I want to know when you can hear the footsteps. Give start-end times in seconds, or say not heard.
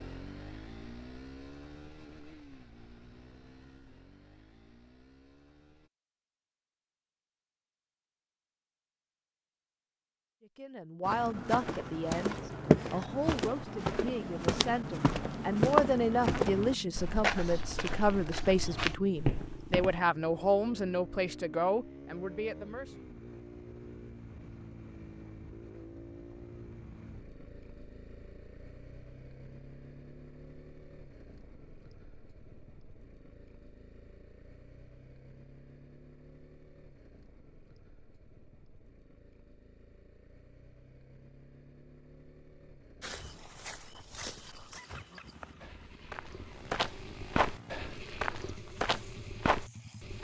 11.1-20.0, 43.0-50.1.